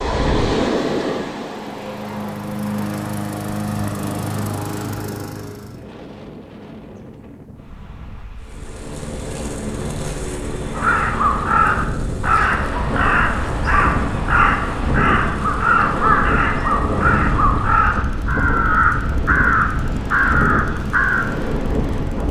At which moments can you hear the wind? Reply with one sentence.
You can hear the wind from 0.0 to 22.2 s.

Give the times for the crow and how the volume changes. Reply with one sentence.
You can hear the crow from 10.8 to 21.2 s, at a steady volume.